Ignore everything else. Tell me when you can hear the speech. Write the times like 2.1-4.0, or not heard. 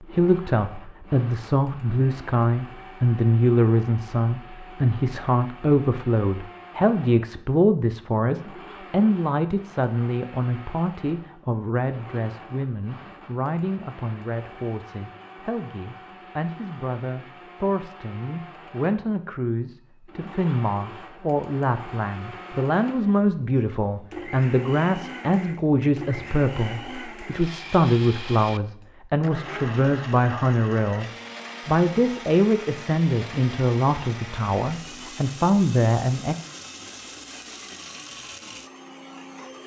0.0-36.4.